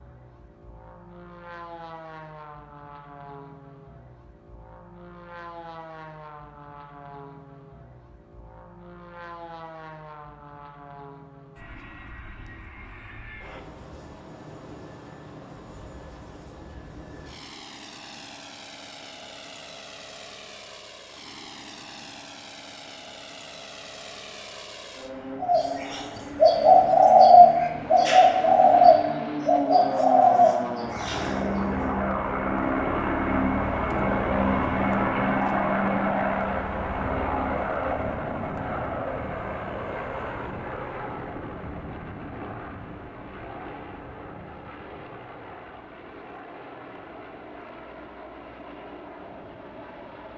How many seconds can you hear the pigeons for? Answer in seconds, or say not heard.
6 s.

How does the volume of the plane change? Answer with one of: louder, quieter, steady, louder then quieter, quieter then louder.
louder then quieter.